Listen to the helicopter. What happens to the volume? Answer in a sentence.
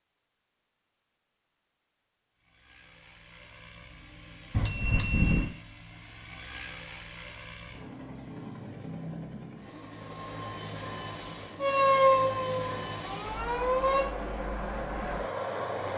The volume of the helicopter goes up.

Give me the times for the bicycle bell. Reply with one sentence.
You can hear the bicycle bell from 4.5 to 5.5 s.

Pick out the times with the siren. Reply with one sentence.
The siren can be heard from 11.6 to 14.1 s.